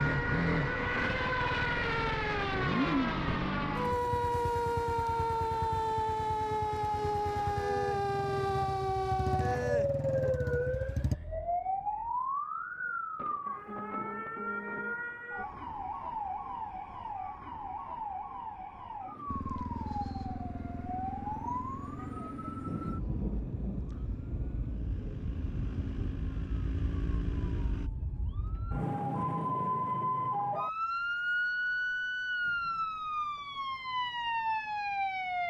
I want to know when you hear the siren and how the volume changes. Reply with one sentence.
You can hear the siren from 0.0 to 35.4 s, getting quieter then louder.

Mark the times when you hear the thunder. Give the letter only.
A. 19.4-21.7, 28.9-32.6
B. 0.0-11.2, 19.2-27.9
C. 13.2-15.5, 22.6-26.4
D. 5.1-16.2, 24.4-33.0
C.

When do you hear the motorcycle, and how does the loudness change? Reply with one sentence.
The motorcycle can be heard from 0.0 to 11.2 s, getting quieter then louder; and from 19.2 to 27.9 s, getting quieter then louder.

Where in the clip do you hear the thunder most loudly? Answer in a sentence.
The loudest moment of the thunder is at 23 seconds.